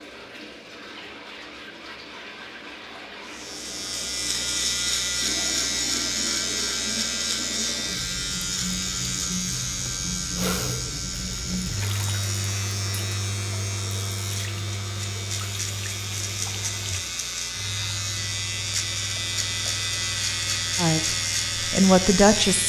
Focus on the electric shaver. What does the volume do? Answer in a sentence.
The loudness of the electric shaver goes down, then up.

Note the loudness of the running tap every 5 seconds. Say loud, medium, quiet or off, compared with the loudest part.
medium, loud, loud, medium, medium.